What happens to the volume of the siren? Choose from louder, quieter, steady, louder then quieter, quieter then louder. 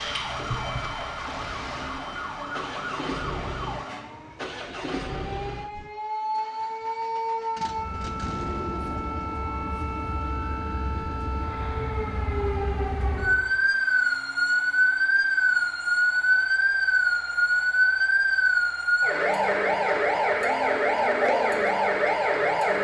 louder.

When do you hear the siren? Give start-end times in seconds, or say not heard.
0.0-22.8.